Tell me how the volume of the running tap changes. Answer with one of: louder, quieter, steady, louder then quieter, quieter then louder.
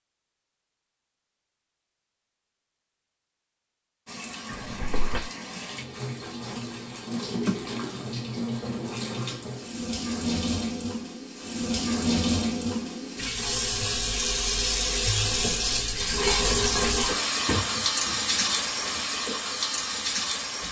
louder.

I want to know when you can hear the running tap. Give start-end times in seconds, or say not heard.
4.0-20.6.